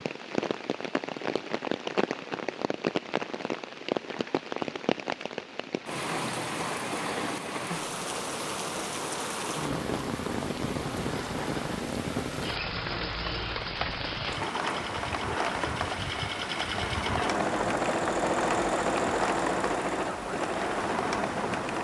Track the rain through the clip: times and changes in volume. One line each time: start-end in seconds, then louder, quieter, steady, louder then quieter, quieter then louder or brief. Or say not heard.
0.0-21.7 steady.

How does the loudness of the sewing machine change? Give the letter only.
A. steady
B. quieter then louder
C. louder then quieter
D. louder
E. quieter
D.